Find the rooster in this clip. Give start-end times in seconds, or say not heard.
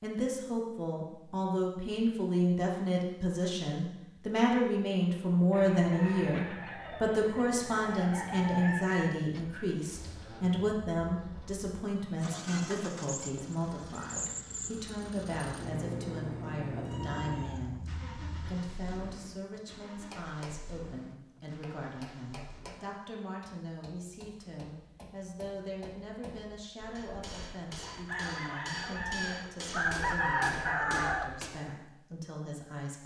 5.5-9.1, 26.8-31.4.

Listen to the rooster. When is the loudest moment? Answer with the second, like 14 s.
30 s.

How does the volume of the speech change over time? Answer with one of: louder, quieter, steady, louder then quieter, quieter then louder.
quieter.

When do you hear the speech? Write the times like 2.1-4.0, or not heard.
0.0-33.0.